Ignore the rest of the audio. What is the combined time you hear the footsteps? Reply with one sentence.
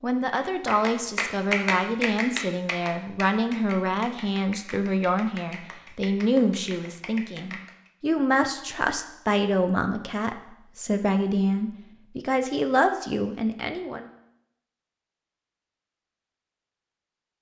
The footsteps can't be heard in this clip.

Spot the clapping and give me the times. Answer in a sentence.
You can hear the clapping from 0.3 to 7.9 s.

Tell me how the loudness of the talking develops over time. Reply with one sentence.
The loudness of the talking stays about the same.